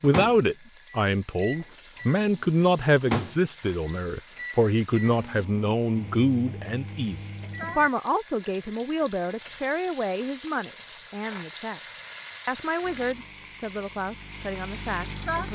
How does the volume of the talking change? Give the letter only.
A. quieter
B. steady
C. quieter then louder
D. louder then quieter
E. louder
A.